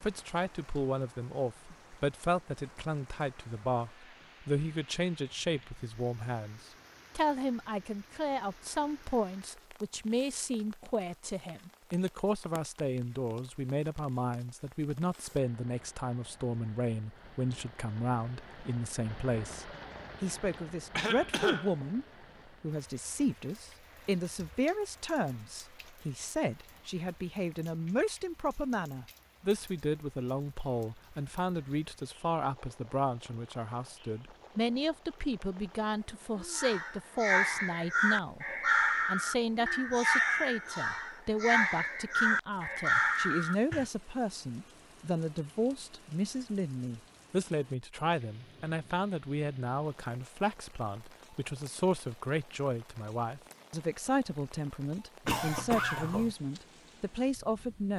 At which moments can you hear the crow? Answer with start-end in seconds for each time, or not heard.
36.5-43.9.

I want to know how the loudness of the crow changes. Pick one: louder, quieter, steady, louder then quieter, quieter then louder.
steady.